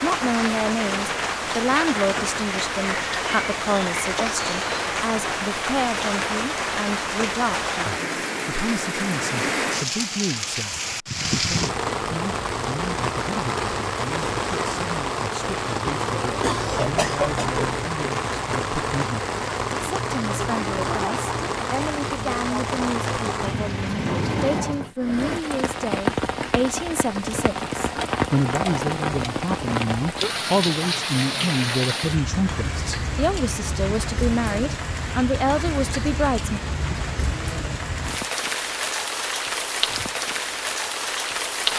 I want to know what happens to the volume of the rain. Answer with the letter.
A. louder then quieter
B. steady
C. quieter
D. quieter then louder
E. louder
B.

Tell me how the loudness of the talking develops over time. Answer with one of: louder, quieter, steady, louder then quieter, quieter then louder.
quieter then louder.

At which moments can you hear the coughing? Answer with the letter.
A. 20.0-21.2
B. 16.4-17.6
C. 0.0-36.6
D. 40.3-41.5
B.